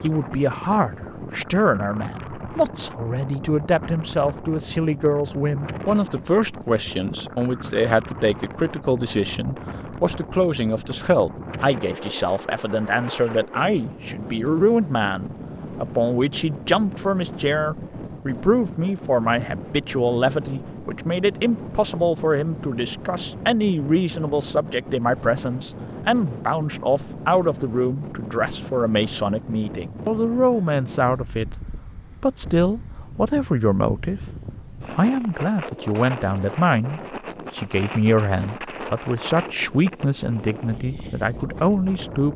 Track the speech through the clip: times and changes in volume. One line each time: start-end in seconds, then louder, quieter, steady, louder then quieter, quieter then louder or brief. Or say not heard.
0.0-31.6 steady
32.2-42.3 steady.